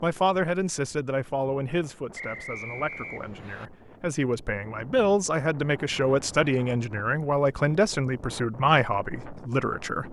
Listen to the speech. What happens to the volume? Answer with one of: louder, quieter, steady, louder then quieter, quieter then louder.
quieter then louder.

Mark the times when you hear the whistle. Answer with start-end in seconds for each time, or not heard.
2.1-3.7.